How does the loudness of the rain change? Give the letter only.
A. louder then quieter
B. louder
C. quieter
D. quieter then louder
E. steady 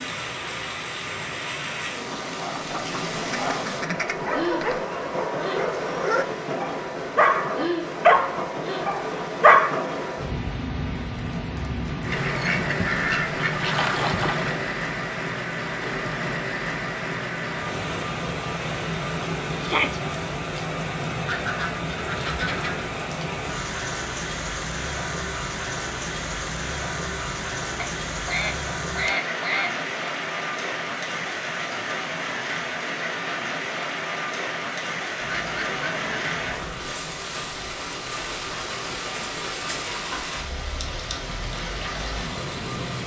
E.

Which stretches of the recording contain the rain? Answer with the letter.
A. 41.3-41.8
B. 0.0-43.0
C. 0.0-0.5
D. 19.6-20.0
B.